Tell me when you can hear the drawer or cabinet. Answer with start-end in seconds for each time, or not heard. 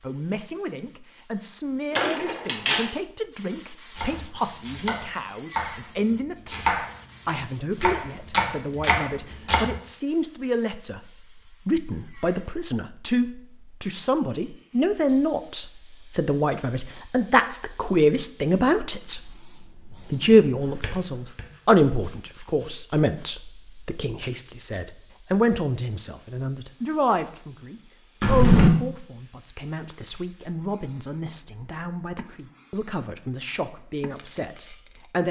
1.9-2.9, 20.2-21.5, 28.2-28.7.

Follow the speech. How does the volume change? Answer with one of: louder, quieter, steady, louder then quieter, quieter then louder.
louder then quieter.